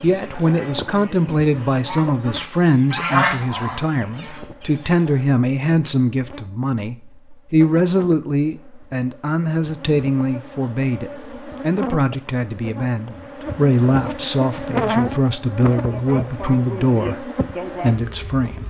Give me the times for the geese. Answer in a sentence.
You can hear the geese from 0.1 to 5.2 s.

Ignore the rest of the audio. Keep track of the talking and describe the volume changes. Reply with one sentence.
The loudness of the talking stays about the same.